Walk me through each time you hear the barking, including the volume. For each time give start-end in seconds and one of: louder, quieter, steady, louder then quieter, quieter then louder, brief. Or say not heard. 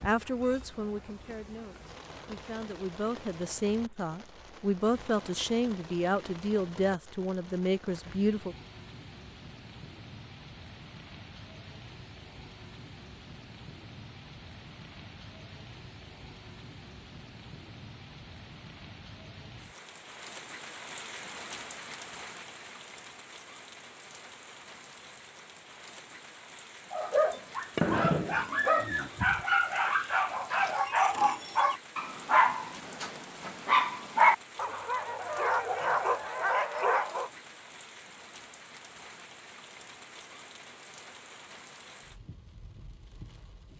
26.9-37.3 steady.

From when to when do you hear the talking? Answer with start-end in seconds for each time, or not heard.
0.0-8.6.